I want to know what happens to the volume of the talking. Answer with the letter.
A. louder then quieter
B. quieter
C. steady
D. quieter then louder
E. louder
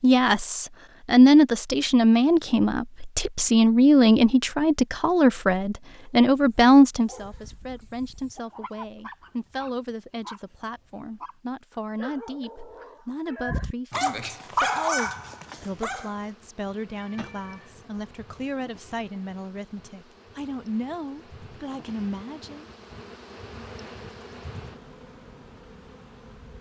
B.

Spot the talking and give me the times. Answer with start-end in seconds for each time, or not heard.
0.0-22.6.